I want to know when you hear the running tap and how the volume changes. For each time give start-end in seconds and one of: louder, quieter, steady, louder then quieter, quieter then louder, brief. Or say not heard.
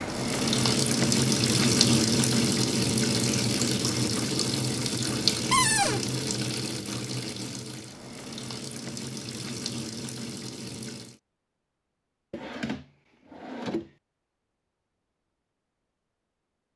0.0-11.2 quieter.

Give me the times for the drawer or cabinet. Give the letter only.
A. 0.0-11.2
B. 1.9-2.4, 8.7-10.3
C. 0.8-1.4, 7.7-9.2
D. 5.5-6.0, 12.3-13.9
D.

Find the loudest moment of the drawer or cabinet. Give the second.
6 s.